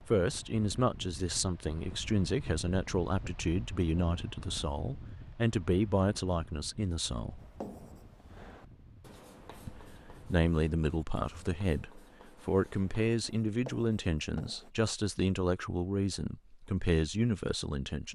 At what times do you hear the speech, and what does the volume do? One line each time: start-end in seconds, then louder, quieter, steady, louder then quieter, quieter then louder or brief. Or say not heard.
0.1-7.4 steady
9.7-18.0 steady.